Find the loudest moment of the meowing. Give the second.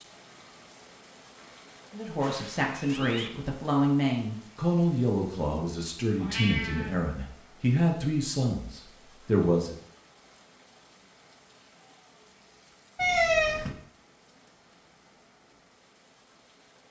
13 s.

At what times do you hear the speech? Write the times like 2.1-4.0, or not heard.
1.9-9.8.